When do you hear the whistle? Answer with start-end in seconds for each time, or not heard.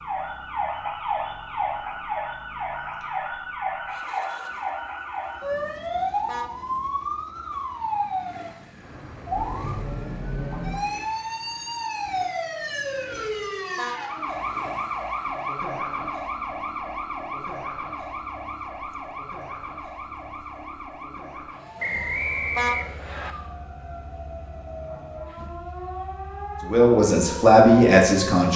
21.8-23.4.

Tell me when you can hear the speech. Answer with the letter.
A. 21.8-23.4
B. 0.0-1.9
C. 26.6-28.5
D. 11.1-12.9
C.